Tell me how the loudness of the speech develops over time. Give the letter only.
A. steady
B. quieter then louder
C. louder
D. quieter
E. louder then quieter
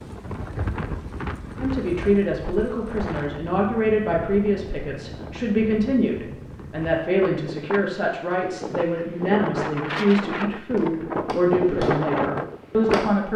A.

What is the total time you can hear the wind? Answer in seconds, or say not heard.
13 s.